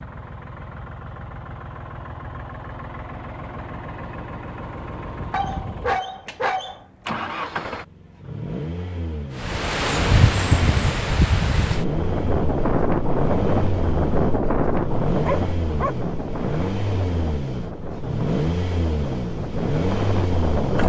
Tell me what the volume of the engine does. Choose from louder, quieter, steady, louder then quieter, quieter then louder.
louder.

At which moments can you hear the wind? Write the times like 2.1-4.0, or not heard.
9.3-20.8.